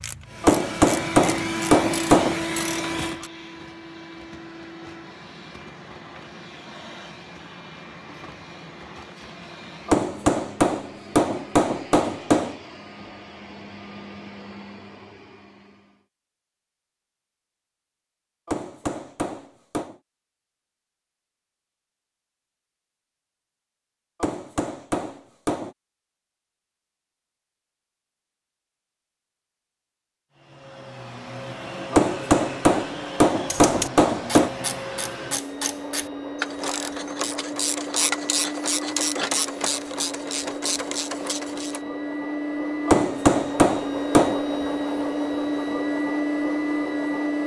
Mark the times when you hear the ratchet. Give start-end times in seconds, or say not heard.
0.0-3.3, 33.5-41.8.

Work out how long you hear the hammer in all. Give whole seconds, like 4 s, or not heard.
12 s.